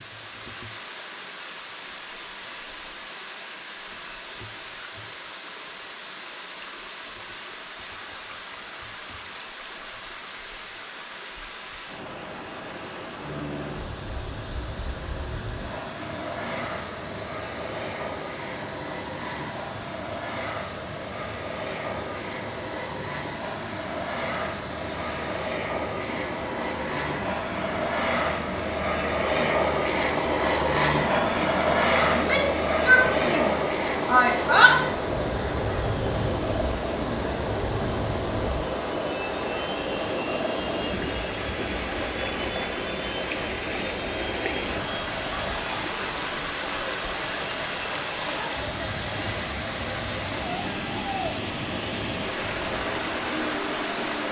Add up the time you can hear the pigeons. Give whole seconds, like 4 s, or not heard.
not heard.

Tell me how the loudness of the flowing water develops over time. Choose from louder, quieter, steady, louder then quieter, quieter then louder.
louder.